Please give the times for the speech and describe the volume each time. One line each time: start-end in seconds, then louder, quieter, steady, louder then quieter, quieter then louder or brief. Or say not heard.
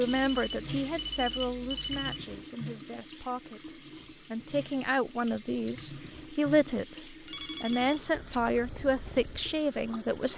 0.0-10.3 quieter then louder.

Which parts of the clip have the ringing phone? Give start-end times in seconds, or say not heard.
0.1-2.2, 7.2-8.4.